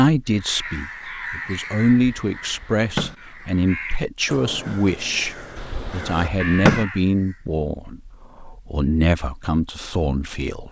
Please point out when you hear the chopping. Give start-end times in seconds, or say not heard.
1.9-3.1, 5.5-6.8.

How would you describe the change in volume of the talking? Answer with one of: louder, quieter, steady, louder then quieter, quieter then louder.
steady.